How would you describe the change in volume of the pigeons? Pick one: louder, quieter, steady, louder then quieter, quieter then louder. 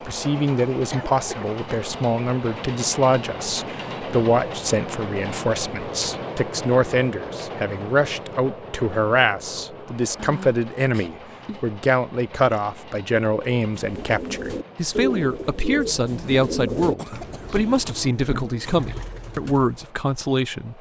quieter.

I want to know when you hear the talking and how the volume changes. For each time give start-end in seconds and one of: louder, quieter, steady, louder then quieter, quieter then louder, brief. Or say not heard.
0.1-20.7 steady.